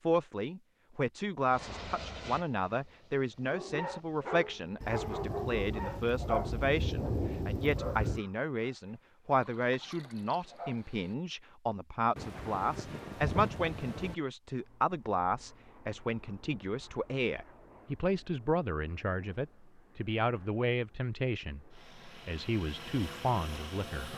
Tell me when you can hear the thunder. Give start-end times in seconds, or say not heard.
4.8-8.2, 12.2-14.2.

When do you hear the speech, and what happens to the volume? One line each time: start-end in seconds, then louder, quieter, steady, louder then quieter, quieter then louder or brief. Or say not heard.
0.0-24.1 steady.